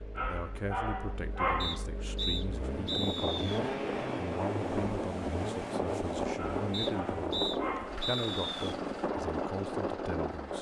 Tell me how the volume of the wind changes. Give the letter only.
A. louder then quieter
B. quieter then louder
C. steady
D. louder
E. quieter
C.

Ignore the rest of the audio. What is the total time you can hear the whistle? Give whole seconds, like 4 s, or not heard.
4 s.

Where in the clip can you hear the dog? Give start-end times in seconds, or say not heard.
0.1-1.9, 6.3-8.1.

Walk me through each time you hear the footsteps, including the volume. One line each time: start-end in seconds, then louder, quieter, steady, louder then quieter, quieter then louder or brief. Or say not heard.
not heard.